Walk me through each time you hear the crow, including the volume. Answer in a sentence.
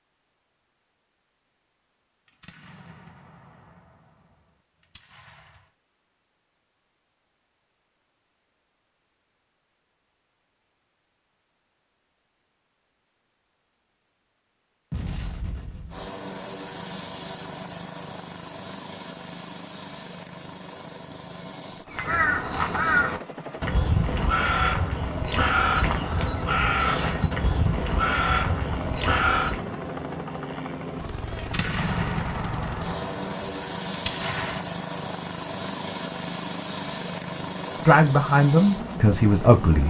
The crow can be heard from 21.9 to 29.6 s, at a steady volume.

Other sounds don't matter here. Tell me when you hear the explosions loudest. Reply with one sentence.
The volume of the explosions peaks at 32 seconds.